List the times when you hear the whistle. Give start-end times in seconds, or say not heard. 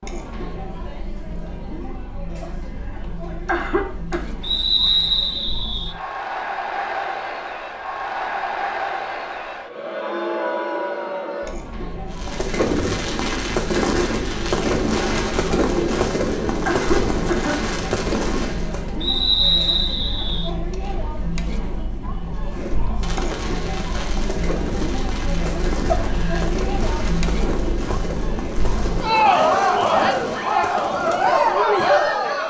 4.4-6.0, 19.0-20.5.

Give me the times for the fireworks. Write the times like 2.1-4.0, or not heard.
12.1-19.0, 22.4-31.6.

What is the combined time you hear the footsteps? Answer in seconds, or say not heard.
not heard.